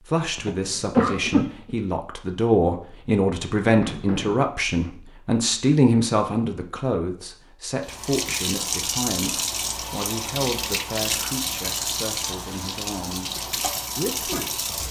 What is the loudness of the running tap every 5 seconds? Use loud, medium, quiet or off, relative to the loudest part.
off, loud, loud.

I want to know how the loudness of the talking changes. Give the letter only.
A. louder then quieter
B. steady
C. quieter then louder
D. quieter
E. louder
D.